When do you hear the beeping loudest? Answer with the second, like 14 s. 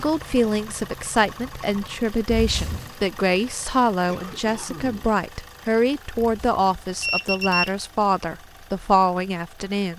7 s.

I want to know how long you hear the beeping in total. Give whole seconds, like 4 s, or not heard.
2 s.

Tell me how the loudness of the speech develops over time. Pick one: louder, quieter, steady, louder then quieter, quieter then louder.
steady.